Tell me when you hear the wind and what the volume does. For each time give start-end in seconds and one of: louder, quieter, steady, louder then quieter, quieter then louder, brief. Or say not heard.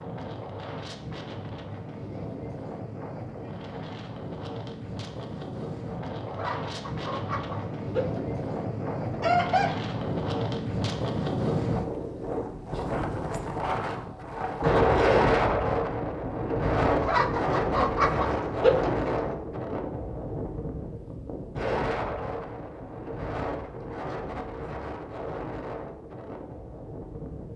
0.0-27.5 louder then quieter.